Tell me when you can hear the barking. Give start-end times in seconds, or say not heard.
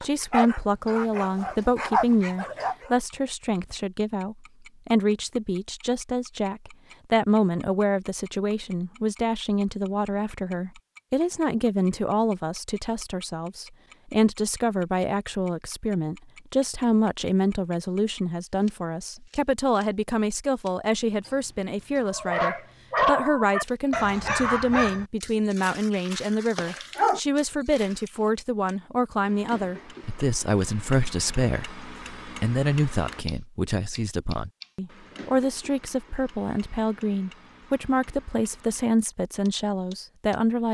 0.0-2.9, 22.1-28.1.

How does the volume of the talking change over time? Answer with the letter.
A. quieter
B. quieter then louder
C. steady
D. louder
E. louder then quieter
C.